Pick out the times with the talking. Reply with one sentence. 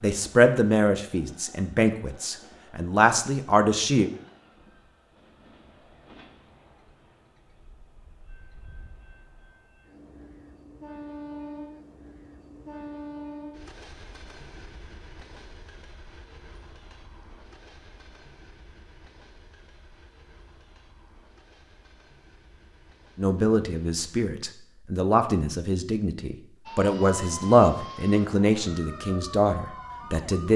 The talking can be heard from 0.0 to 4.1 s and from 23.1 to 30.5 s.